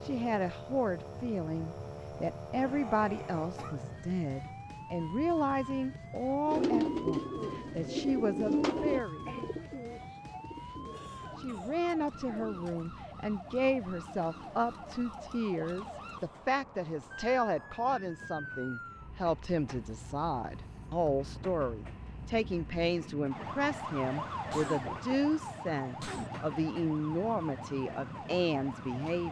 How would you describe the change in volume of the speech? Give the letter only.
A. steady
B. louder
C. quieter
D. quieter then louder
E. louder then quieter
A.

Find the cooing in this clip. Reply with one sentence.
You can hear the cooing from 6.5 to 12.8 s.